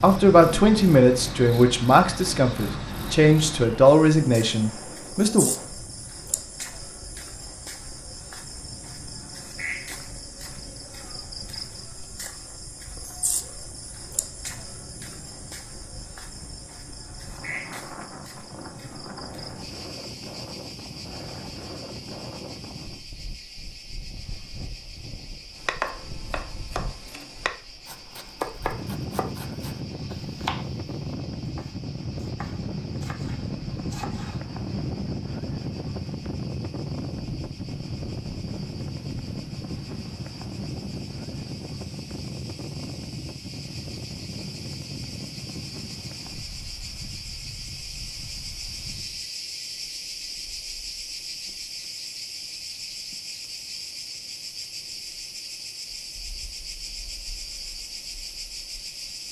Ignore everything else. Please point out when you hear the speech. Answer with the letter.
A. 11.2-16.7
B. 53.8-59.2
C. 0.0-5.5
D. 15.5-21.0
C.